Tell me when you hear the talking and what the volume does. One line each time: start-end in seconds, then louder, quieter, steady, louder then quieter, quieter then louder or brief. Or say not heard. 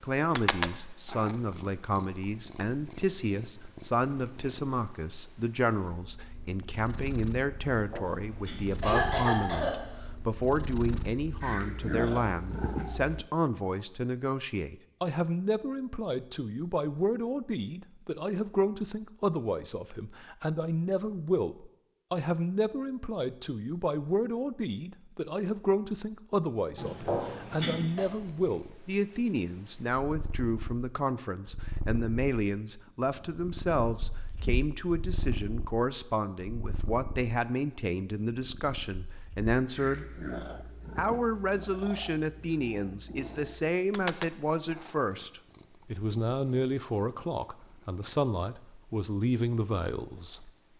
0.0-40.0 steady
41.0-50.5 steady.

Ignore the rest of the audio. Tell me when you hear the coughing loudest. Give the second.
9 s.